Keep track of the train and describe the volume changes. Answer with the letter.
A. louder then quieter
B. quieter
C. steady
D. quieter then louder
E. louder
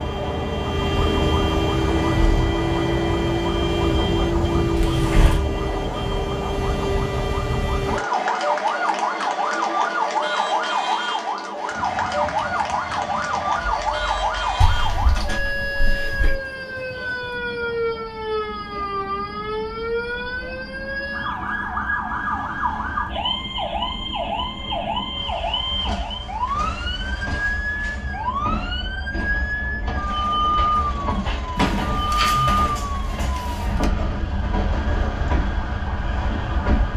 D.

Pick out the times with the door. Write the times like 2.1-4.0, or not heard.
4.8-5.5, 14.6-16.4, 31.6-33.9.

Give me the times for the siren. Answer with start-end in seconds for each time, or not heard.
0.0-36.9.